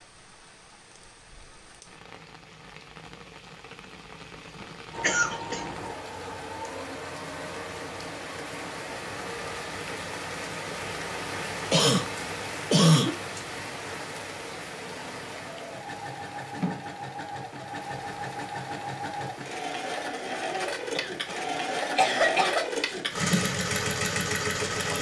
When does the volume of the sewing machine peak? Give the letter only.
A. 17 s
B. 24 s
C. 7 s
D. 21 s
B.